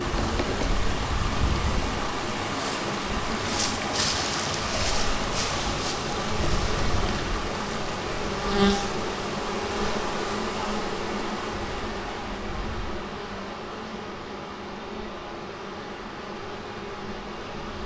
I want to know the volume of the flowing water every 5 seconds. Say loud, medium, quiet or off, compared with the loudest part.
loud, loud, medium, quiet.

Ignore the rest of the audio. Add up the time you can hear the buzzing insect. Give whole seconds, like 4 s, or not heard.
18 s.